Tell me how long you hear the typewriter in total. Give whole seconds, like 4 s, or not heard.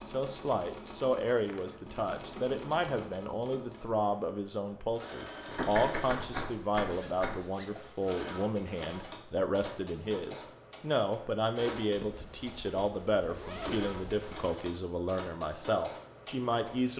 2 s.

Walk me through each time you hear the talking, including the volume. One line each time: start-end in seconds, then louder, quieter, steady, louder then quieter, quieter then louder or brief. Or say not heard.
0.1-16.9 steady.